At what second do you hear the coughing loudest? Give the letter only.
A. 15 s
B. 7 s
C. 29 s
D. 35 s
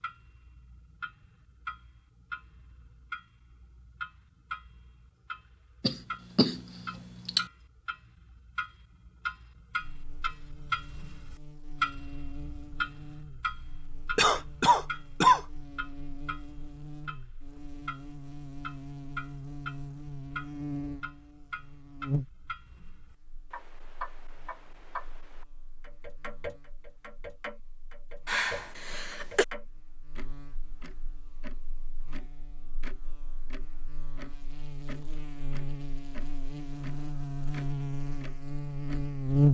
A.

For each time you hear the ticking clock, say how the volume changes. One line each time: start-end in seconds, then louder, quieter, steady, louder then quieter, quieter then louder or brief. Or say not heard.
0.0-39.5 louder then quieter.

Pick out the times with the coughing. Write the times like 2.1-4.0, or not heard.
5.8-7.5, 14.2-15.4, 28.2-29.4.